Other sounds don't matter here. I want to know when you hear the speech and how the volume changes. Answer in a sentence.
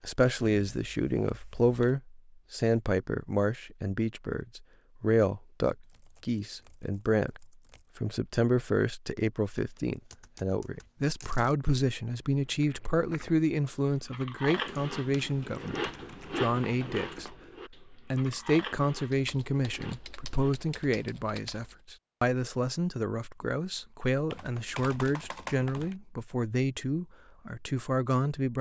You can hear the speech from 0.0 to 28.5 s, at a steady volume.